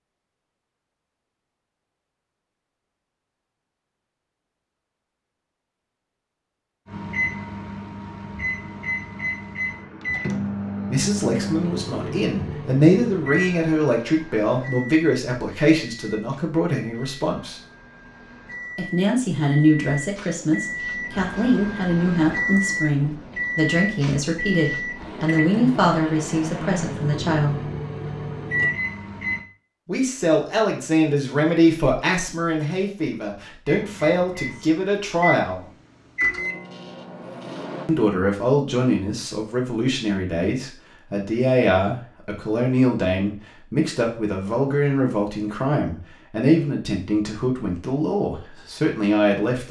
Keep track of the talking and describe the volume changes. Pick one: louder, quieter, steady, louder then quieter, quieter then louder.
steady.